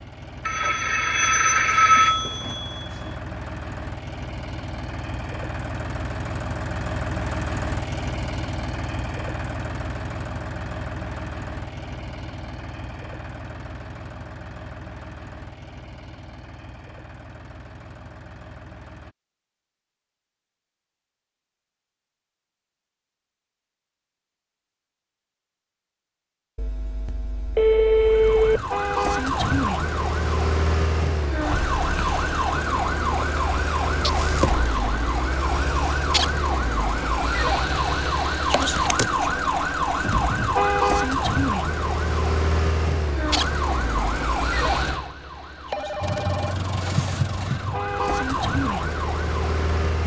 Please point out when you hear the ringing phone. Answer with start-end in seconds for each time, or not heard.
0.5-3.1, 26.6-28.6, 45.7-46.5.